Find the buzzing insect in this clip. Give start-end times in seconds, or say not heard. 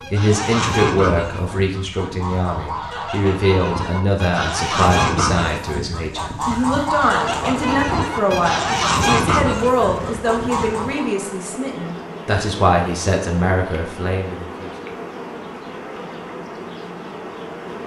7.2-17.8.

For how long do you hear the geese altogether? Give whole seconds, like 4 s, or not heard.
11 s.